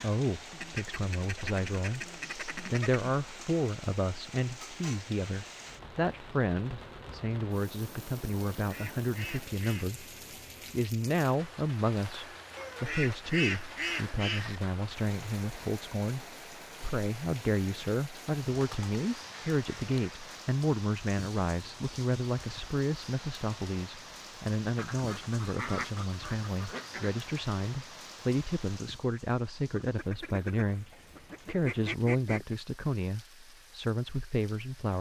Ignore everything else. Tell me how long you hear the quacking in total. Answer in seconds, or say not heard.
13 s.